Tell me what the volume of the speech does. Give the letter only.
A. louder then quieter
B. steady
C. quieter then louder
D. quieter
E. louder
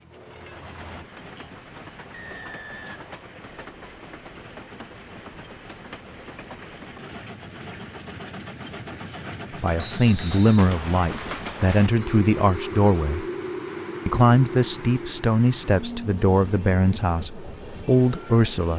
B.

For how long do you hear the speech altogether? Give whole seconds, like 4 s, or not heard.
8 s.